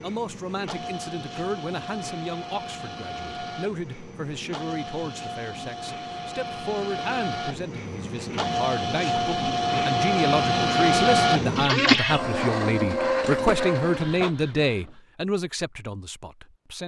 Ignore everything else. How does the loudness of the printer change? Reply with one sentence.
The loudness of the printer goes up.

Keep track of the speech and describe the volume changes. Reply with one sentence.
The volume of the speech goes up.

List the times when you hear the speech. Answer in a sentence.
You can hear the speech from 0.0 to 16.8 s.